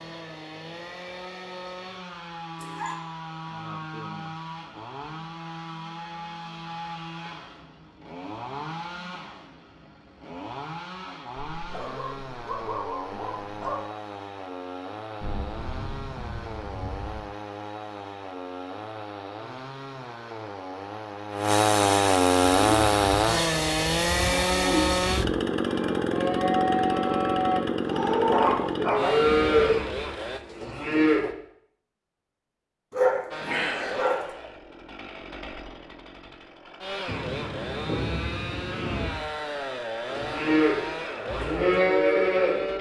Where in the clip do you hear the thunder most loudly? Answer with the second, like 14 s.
38 s.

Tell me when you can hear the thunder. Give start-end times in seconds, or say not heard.
15.2-17.2, 37.0-39.1.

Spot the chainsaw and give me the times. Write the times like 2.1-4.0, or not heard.
0.0-30.4, 33.3-42.7.